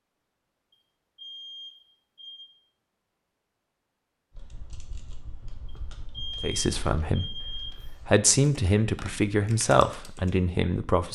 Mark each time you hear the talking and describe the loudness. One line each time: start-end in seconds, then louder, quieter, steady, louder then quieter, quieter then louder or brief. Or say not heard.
6.4-11.1 louder then quieter.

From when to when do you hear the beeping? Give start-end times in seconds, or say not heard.
0.7-2.5, 5.7-7.9.